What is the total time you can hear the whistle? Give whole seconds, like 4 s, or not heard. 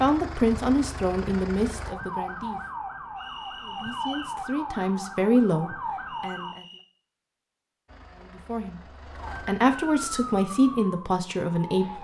2 s.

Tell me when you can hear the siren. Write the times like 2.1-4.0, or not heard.
1.8-6.5, 9.2-11.9.